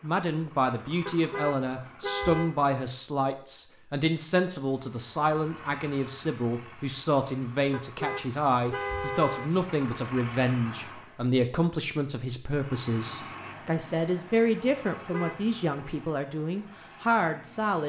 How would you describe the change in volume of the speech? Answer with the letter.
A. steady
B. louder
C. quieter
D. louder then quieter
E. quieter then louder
A.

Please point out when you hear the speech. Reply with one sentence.
You can hear the speech from 0.0 to 17.8 s.